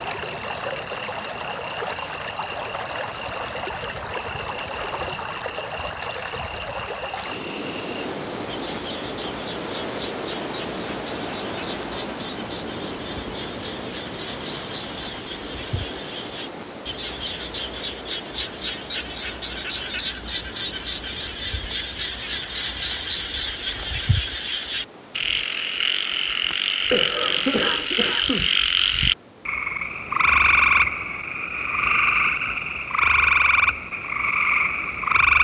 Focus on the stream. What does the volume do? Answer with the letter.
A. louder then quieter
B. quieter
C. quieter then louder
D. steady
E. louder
B.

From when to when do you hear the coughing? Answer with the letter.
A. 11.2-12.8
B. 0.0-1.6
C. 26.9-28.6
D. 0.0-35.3
C.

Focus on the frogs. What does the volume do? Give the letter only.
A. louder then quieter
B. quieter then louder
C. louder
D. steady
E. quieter
C.